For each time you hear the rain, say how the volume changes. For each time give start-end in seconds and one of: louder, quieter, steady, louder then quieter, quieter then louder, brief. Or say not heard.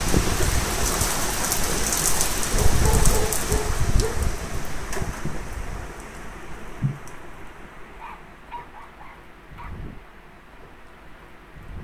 0.0-11.7 quieter.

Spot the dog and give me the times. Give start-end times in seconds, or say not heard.
2.5-4.2, 7.8-9.8.